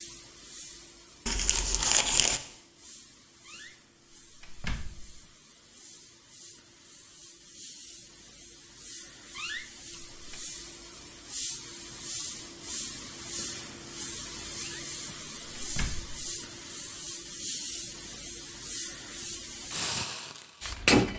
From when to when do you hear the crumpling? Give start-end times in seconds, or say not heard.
1.2-2.4.